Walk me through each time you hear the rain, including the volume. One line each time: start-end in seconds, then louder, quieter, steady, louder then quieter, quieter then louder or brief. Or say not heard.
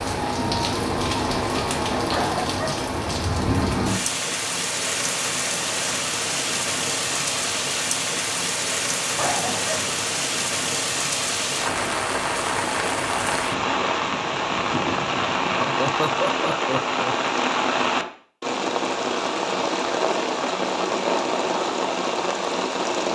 0.0-23.1 steady.